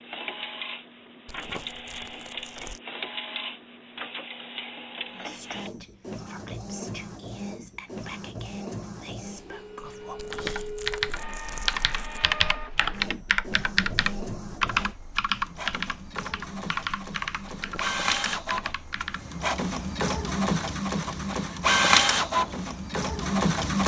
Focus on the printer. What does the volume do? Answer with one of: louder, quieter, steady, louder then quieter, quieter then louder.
louder.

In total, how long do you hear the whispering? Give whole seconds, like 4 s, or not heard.
6 s.